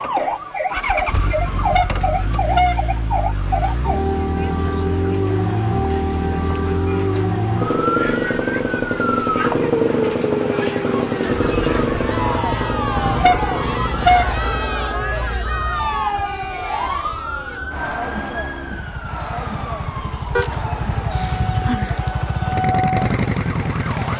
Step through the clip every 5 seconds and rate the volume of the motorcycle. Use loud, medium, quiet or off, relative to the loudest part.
medium, loud, loud, quiet, loud.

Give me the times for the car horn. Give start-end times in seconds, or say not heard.
1.4-3.1, 12.9-14.4, 20.4-21.8.